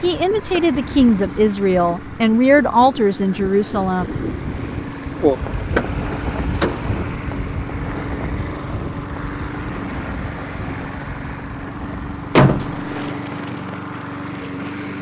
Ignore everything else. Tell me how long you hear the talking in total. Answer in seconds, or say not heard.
4 s.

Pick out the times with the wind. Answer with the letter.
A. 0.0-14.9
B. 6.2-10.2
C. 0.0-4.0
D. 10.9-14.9
A.